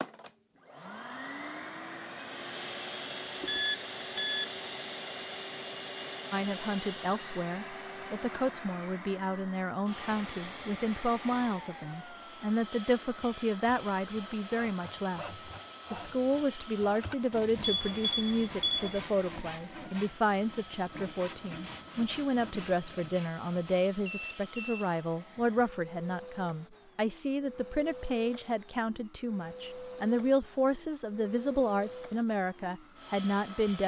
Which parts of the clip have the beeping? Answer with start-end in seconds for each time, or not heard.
3.4-4.5, 17.6-19.0, 24.1-24.9.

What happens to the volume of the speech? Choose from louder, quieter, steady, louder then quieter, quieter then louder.
steady.